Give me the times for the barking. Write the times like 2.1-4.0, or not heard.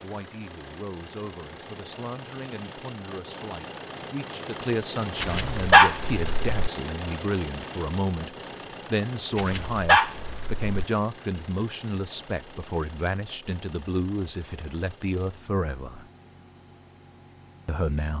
5.2-6.5, 9.3-10.8.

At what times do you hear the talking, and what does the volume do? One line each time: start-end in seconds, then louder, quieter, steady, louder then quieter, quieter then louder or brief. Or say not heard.
0.0-16.1 louder
17.6-18.1 brief.